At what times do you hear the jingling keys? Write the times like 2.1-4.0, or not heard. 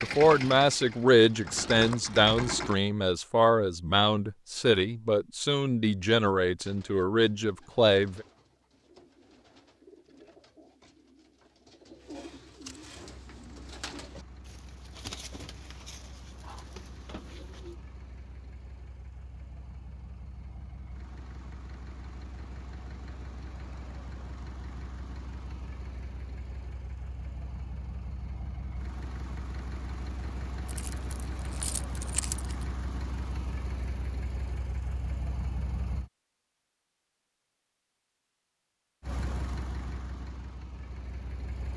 30.6-32.6.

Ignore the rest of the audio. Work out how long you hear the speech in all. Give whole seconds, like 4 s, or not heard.
8 s.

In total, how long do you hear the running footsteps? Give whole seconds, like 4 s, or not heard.
not heard.